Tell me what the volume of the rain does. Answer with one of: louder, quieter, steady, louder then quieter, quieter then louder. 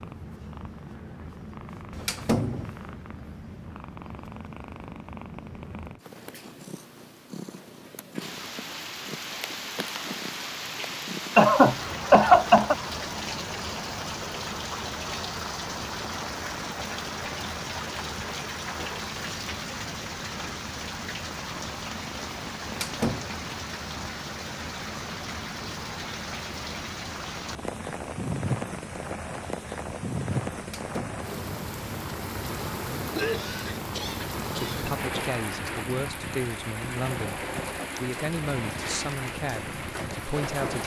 steady.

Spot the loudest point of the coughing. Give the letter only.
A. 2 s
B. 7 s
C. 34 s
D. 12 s
D.